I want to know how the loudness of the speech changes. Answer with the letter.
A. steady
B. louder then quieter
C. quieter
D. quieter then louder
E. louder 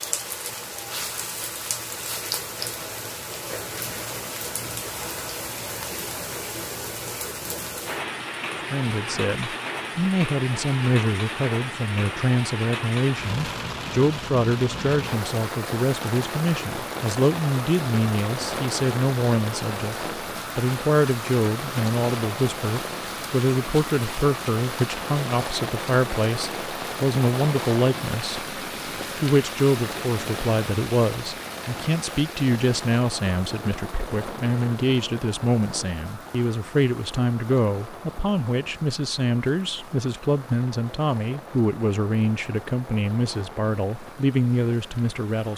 A.